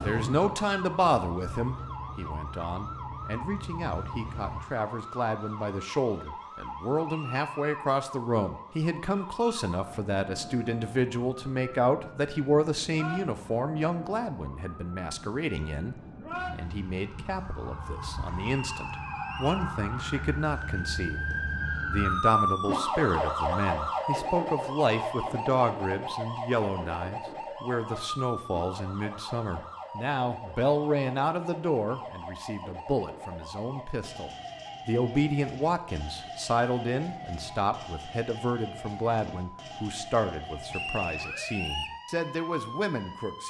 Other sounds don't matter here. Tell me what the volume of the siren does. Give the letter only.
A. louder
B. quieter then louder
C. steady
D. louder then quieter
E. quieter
D.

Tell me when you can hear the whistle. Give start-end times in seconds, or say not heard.
7.0-7.8, 18.4-19.7, 40.7-42.0.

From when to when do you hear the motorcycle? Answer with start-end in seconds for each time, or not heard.
0.0-4.7.